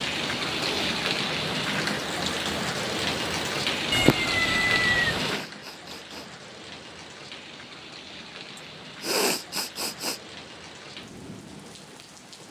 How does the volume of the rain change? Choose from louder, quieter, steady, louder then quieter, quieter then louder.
quieter.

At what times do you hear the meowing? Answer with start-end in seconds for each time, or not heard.
3.9-5.2.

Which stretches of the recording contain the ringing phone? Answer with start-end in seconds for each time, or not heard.
not heard.